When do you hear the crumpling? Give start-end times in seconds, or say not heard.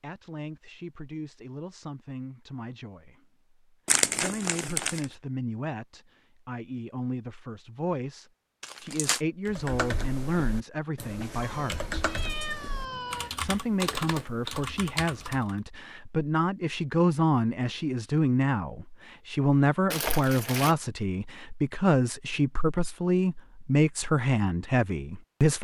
3.9-5.0, 8.6-9.2, 19.9-20.8.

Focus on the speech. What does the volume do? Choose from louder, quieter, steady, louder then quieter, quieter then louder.
louder.